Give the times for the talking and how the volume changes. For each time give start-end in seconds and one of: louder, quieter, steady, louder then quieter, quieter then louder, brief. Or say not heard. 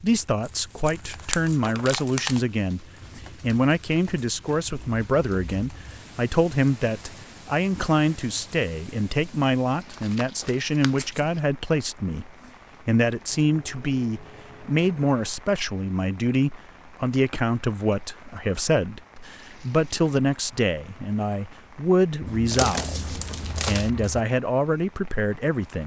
0.0-25.8 steady.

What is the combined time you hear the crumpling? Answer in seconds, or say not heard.
5 s.